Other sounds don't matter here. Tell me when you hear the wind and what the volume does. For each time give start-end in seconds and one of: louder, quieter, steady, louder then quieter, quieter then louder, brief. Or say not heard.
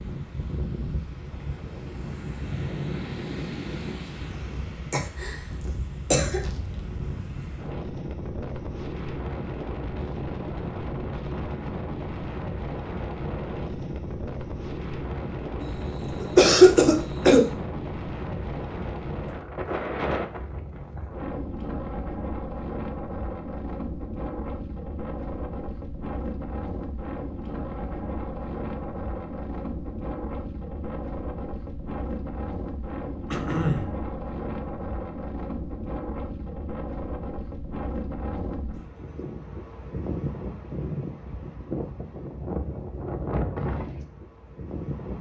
0.0-45.1 steady.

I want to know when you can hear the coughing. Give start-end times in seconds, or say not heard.
4.9-6.5, 15.6-17.4, 33.3-34.0.